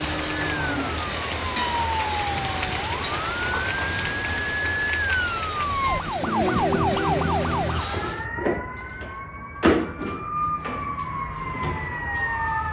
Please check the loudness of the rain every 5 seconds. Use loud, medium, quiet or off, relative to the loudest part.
loud, medium, off.